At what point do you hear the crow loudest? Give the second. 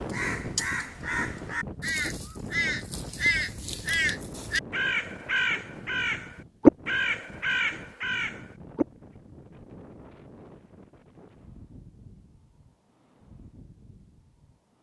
7 s.